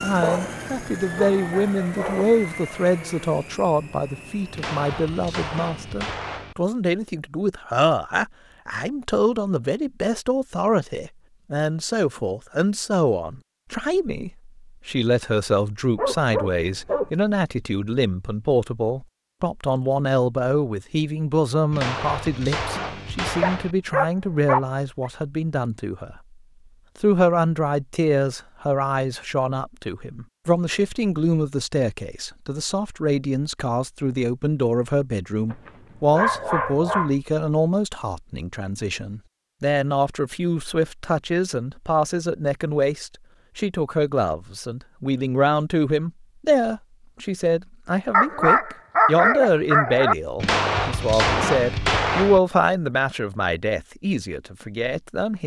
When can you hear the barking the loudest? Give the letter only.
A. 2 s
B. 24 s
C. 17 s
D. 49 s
D.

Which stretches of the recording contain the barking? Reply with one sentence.
The barking can be heard from 0.2 to 2.2 s, from 15.9 to 17.1 s, from 23.4 to 25.1 s, from 35.5 to 37.1 s and from 48.1 to 50.1 s.